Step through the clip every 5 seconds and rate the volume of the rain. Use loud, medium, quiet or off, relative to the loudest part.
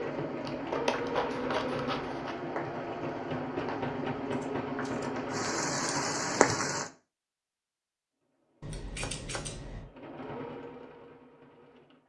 quiet, loud, off.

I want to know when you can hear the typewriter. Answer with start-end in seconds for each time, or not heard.
not heard.